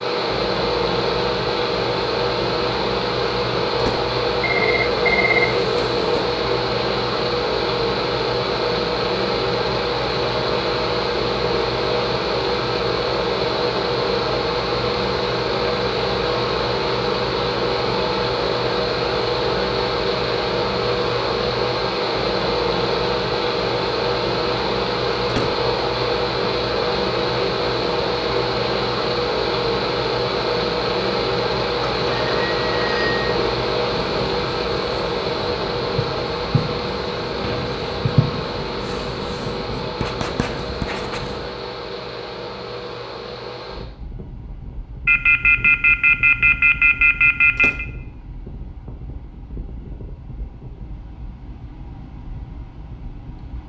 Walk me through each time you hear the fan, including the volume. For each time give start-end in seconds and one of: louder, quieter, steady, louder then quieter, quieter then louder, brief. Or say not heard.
0.0-53.6 quieter.